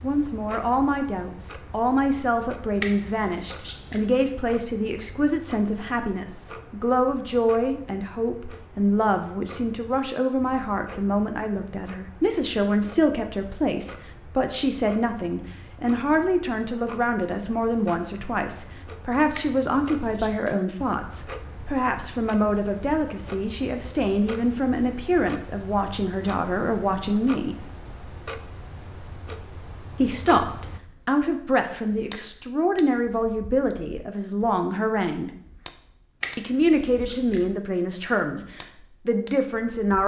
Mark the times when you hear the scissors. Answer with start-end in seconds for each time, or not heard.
2.8-4.0, 19.4-20.6, 36.2-37.4.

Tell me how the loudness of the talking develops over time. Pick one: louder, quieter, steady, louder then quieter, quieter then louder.
steady.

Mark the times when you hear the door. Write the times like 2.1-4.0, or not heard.
not heard.